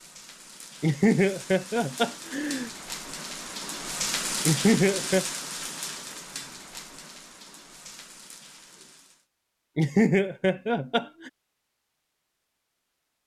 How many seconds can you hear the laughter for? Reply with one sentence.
You can hear the laughter for 4 seconds altogether.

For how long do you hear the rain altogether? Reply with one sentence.
The rain can be heard for 9 seconds in total.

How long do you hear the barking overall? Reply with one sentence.
You can't hear the barking here.